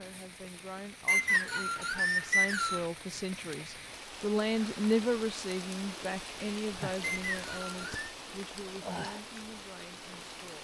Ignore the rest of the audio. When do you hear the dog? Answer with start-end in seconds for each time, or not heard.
not heard.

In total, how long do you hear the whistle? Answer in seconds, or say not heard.
3 s.